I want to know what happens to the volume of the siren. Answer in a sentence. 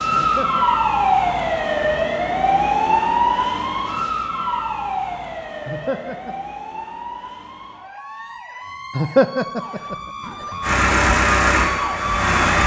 The loudness of the siren goes down, then up.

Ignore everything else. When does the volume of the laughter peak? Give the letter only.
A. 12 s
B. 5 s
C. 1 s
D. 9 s
D.